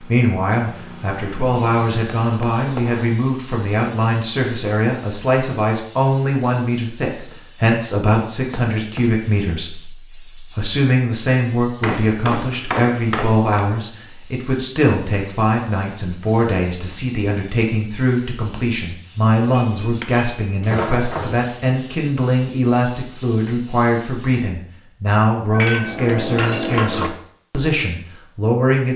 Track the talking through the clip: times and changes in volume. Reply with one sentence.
The talking can be heard from 0.0 to 28.9 s, at a steady volume.